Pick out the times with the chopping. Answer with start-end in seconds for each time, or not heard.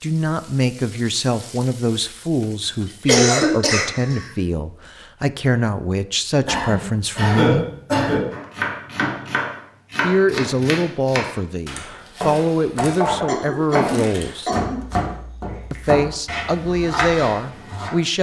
8.3-17.9.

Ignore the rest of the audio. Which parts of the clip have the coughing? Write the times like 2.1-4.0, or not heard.
3.0-4.2, 6.5-8.2, 13.2-14.8.